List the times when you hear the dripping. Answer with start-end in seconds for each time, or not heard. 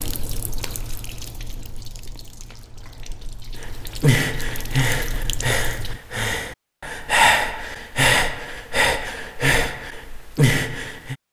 0.0-6.0.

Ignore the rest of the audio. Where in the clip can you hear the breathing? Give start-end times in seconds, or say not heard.
3.6-11.2.